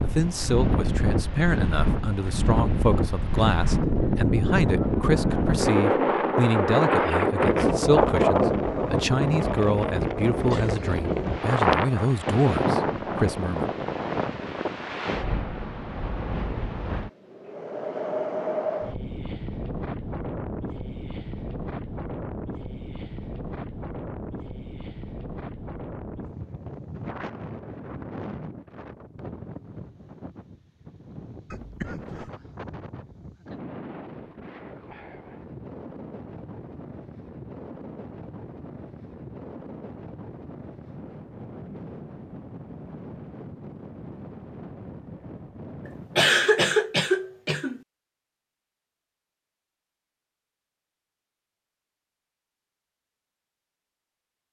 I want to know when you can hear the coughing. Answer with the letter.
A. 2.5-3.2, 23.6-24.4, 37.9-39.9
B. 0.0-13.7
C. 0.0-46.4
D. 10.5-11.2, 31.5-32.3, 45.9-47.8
D.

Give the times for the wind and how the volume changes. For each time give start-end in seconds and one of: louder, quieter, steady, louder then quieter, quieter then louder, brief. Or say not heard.
0.0-46.4 quieter.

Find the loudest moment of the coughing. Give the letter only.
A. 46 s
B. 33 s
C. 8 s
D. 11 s
A.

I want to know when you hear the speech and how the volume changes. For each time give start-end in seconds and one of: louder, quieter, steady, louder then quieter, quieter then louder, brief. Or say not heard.
0.0-13.7 steady.